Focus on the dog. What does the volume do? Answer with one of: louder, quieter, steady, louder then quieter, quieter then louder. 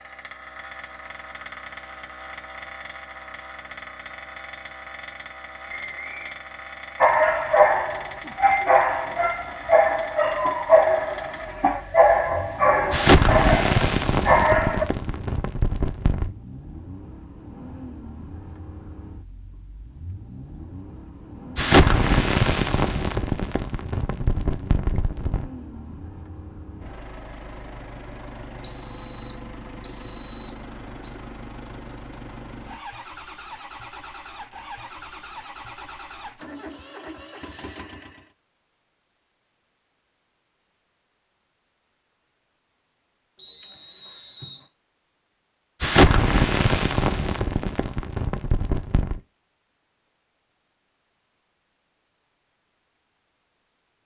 steady.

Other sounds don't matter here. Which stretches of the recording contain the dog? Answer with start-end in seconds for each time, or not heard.
7.0-14.8.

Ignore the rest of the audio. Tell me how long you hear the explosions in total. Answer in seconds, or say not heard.
11 s.